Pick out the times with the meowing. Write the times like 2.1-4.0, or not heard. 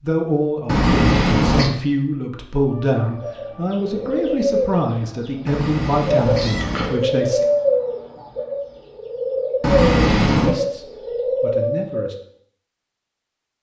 0.7-1.7, 5.5-7.0, 9.6-10.6.